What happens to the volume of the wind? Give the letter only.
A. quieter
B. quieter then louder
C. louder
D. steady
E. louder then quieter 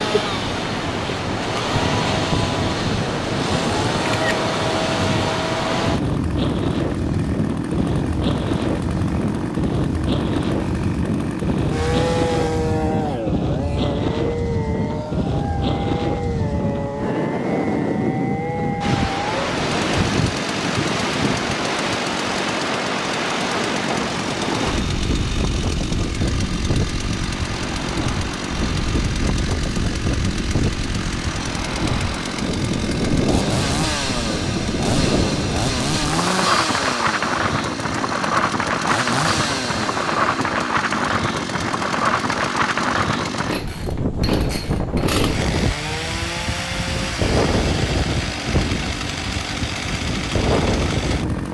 D.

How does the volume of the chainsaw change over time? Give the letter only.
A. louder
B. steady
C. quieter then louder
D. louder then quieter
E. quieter
B.